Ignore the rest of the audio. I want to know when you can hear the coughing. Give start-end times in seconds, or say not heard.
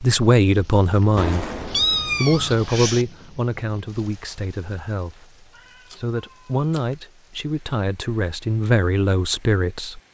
not heard.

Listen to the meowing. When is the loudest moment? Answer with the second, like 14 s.
2 s.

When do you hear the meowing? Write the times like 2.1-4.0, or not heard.
1.1-3.0, 5.5-7.0.